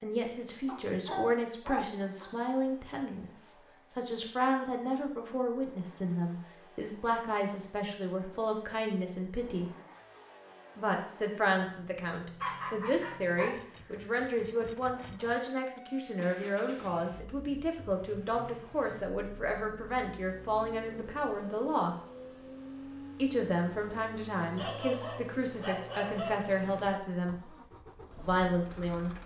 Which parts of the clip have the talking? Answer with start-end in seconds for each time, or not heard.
0.0-9.7, 10.8-21.9, 23.1-27.6, 28.2-29.2.